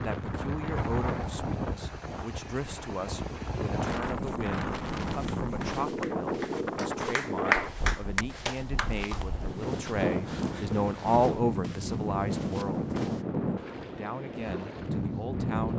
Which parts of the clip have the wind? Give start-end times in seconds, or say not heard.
0.0-15.7.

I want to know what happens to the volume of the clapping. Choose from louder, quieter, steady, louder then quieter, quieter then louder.
louder then quieter.